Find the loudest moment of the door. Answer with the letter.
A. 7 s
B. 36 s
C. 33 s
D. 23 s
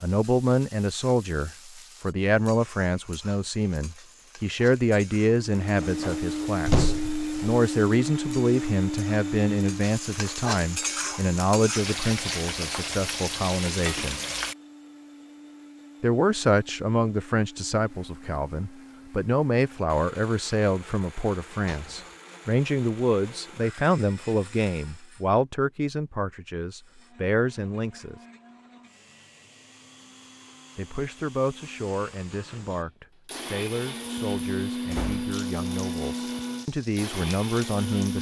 A.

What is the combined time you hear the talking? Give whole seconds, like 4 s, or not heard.
34 s.